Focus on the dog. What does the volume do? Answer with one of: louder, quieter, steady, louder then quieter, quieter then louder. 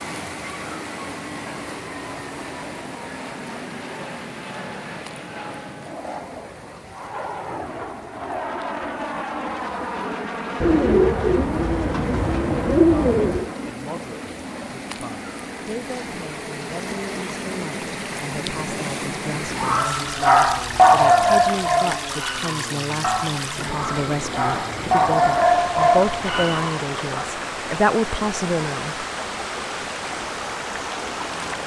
quieter then louder.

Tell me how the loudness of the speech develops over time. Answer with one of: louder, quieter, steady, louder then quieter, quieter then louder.
louder.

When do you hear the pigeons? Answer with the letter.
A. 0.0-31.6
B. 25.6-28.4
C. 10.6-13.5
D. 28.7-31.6
C.